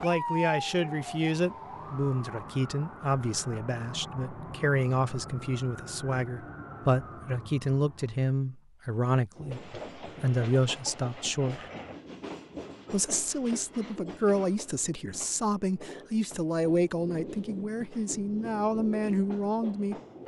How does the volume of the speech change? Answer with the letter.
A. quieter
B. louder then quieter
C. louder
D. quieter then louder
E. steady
E.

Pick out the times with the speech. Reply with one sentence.
The speech can be heard from 0.0 to 11.7 s and from 12.9 to 19.9 s.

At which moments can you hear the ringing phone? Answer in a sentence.
You can't hear the ringing phone here.